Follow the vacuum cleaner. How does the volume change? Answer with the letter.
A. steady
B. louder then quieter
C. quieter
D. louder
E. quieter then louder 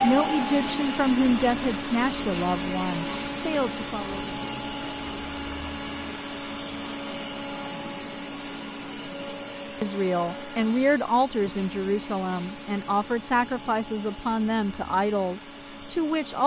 C.